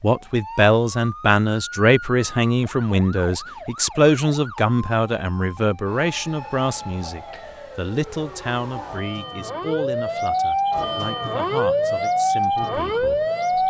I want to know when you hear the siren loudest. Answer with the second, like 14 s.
12 s.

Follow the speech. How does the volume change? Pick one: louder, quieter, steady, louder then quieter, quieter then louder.
quieter.